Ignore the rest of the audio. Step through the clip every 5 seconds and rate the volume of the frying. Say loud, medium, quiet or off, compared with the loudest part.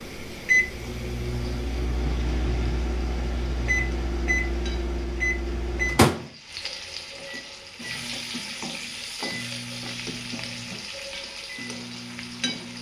medium, loud, loud.